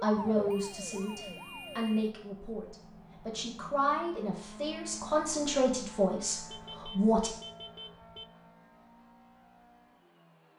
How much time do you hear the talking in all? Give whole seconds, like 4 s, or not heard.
7 s.